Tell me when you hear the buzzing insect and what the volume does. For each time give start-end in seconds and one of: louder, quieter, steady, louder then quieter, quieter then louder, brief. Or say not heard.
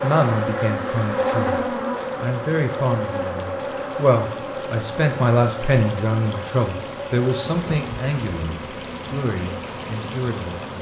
0.0-10.7 quieter.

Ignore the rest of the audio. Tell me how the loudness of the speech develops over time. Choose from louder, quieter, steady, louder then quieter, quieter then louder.
louder then quieter.